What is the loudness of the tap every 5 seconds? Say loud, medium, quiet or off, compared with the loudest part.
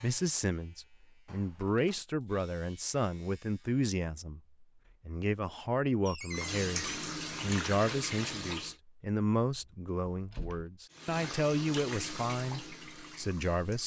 off, loud, medium.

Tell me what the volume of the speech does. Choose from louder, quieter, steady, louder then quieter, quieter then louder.
steady.